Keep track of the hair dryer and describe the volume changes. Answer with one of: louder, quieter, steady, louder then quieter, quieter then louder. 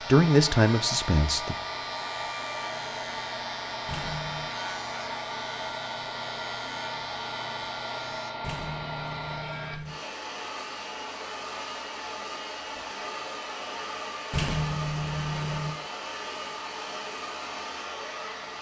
steady.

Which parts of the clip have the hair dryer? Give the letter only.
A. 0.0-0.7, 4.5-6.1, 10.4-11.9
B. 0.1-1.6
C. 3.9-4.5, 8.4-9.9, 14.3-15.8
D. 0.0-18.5
D.